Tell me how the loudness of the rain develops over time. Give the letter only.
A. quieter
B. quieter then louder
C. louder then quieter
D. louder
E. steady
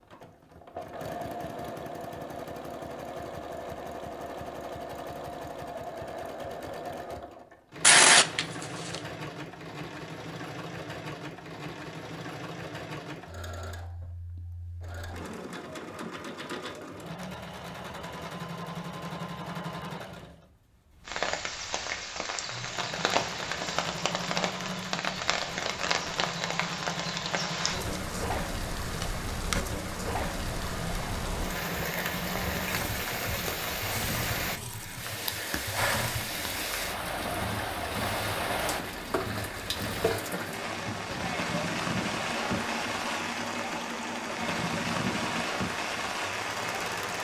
E.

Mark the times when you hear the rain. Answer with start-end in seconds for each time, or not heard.
21.1-47.1.